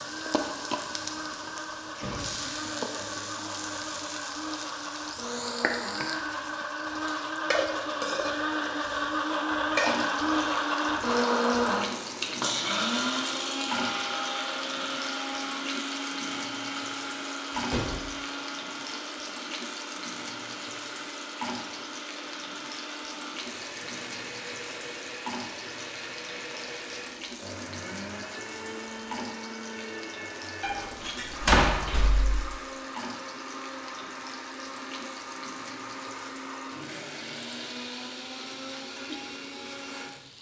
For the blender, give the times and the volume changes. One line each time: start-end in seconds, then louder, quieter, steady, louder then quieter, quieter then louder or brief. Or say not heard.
0.0-40.3 louder then quieter.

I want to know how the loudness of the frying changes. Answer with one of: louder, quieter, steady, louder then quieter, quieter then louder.
quieter.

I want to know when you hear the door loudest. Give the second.
32 s.